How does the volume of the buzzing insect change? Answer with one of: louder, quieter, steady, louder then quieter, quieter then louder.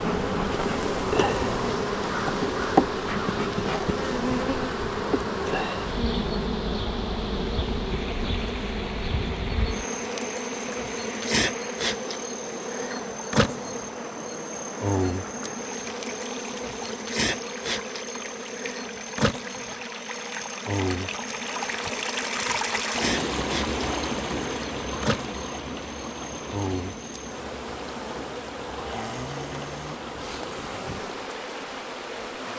quieter.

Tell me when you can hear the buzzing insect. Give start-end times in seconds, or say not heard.
0.0-32.5.